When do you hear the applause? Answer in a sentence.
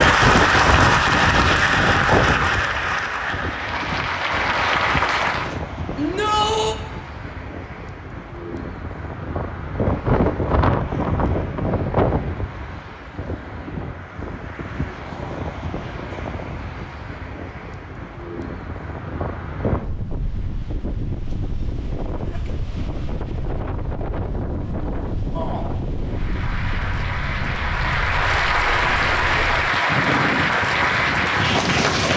The applause can be heard from 0.0 to 5.6 s and from 26.1 to 32.1 s.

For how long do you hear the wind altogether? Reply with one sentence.
The wind can be heard for 32 seconds in total.